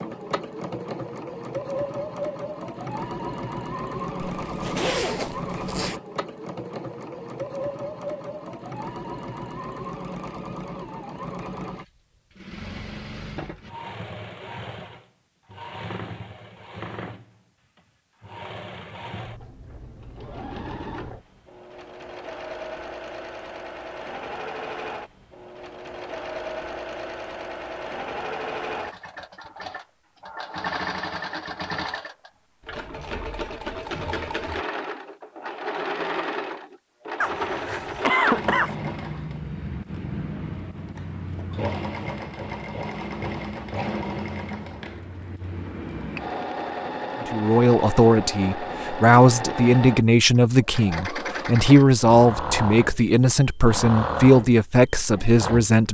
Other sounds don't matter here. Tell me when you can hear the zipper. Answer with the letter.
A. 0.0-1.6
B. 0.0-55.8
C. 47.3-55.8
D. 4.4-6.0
D.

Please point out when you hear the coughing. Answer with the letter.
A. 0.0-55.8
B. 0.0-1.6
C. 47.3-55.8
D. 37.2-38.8
D.